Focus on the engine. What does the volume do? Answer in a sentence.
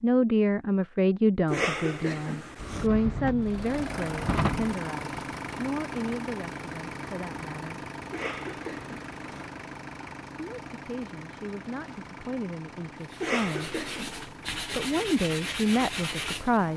The loudness of the engine goes down.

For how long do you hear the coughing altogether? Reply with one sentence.
The coughing can be heard for 4 seconds in total.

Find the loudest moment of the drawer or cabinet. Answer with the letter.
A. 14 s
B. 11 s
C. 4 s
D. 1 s
C.